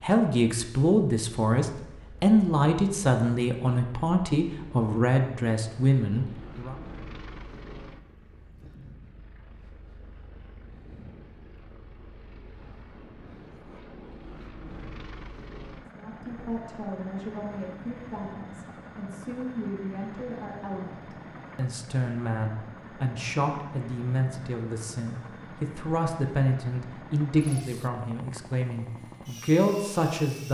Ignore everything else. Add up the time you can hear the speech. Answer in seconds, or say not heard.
21 s.